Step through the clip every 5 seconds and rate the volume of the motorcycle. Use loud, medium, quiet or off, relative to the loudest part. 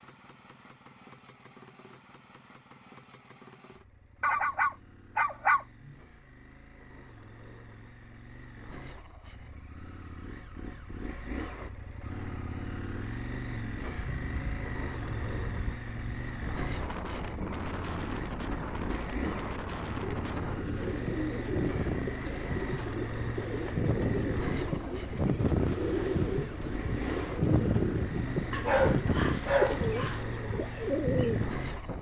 quiet, quiet, loud, loud, loud, loud, loud.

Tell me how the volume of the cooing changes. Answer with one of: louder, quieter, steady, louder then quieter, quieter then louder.
steady.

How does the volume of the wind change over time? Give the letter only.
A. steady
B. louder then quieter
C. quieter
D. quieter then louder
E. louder
E.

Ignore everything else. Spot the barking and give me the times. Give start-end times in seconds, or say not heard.
4.2-6.0, 28.5-30.2.